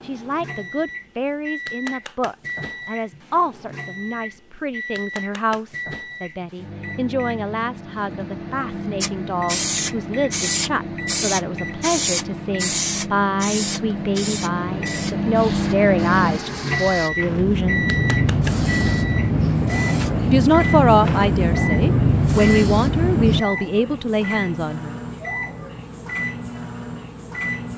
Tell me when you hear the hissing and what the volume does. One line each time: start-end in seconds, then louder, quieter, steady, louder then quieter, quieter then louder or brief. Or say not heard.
9.0-23.4 quieter then louder.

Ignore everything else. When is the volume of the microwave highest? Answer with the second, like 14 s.
16 s.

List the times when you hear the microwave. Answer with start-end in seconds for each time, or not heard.
0.0-27.7.